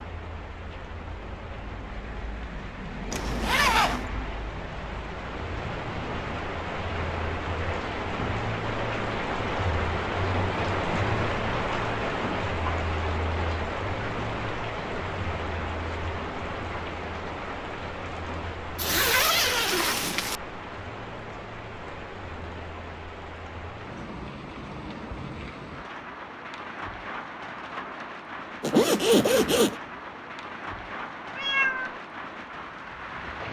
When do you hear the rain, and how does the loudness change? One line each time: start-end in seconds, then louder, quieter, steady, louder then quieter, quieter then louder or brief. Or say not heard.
0.0-33.4 louder then quieter.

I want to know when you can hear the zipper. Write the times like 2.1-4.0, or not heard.
3.1-4.0, 18.8-20.4, 28.6-29.8.